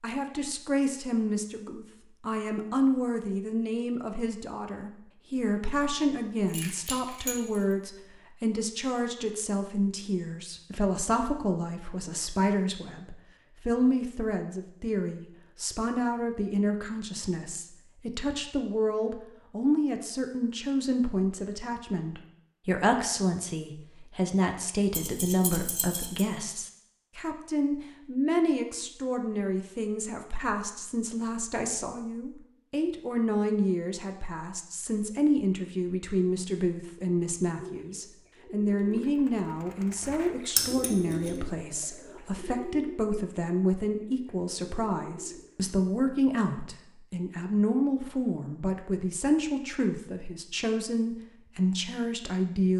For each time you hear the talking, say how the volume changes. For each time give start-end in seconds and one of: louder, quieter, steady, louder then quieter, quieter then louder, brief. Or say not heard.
0.0-52.7 steady.